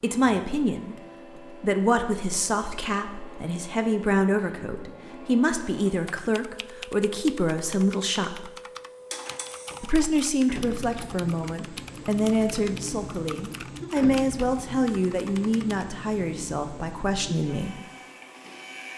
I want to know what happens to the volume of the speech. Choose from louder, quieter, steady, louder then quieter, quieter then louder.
steady.